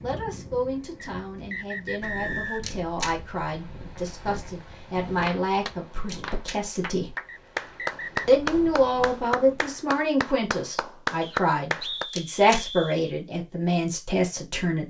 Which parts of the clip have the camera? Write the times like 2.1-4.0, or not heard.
2.6-3.1, 6.0-6.6, 12.1-12.7.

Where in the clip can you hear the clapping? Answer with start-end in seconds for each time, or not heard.
5.2-12.1.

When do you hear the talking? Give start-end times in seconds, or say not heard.
0.0-7.2, 8.2-14.8.